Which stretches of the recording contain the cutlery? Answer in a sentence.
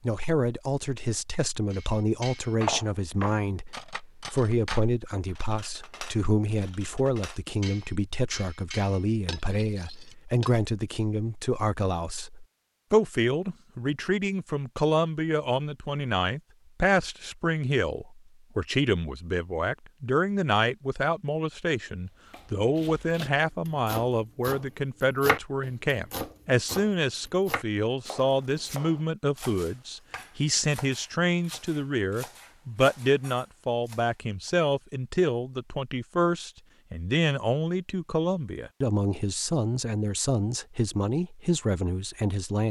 You can hear the cutlery from 1.7 to 10.5 s.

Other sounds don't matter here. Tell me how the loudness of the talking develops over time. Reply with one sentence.
The loudness of the talking stays about the same.